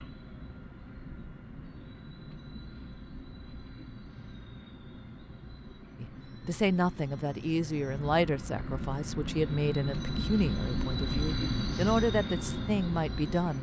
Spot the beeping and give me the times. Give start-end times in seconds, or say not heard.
not heard.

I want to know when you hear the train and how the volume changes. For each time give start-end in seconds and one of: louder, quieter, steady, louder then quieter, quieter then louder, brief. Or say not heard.
0.0-13.5 louder.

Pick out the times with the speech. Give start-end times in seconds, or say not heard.
6.0-13.5.